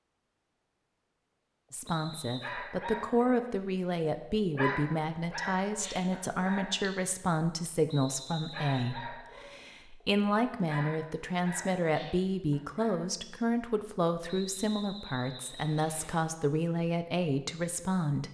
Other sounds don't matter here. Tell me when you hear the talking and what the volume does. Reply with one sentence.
The talking can be heard from 1.7 to 18.2 s, at a steady volume.